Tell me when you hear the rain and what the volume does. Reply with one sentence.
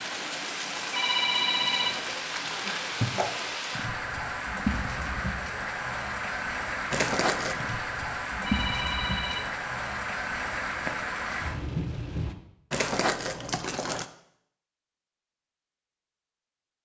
The rain can be heard from 0.0 to 12.3 s, at a steady volume.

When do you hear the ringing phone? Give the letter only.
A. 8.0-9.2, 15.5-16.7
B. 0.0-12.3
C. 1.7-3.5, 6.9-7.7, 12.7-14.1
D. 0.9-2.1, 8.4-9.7
D.